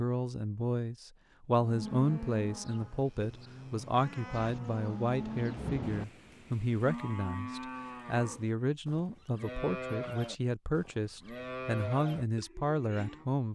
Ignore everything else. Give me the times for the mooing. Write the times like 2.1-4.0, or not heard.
1.6-13.2.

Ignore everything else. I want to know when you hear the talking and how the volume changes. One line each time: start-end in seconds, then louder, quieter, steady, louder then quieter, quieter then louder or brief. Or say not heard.
0.0-13.5 steady.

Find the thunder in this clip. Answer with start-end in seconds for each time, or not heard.
4.3-6.0.